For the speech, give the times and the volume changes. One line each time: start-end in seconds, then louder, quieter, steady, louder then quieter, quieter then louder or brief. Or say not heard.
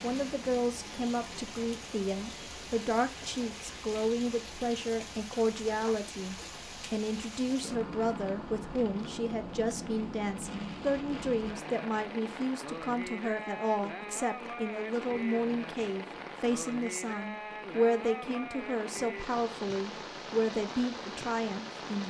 0.0-22.0 steady.